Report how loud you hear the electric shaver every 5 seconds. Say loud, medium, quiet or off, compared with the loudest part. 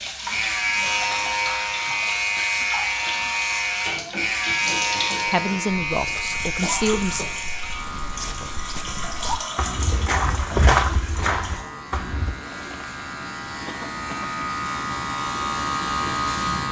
loud, medium, medium, loud.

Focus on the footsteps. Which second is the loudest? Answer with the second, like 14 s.
11 s.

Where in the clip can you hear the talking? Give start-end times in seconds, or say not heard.
5.2-7.2.